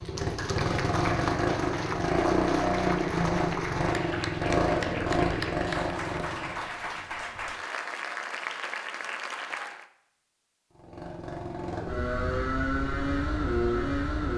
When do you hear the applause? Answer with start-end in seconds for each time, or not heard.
0.0-9.8.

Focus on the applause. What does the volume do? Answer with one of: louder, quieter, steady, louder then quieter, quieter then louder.
steady.